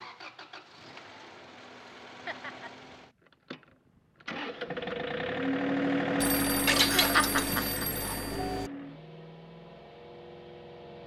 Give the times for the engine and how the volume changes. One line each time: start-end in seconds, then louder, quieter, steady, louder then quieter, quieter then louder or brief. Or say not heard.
0.0-11.0 louder then quieter.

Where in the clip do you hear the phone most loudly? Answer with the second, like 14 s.
7 s.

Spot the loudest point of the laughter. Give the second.
7 s.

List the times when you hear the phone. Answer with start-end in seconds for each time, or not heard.
6.2-8.7.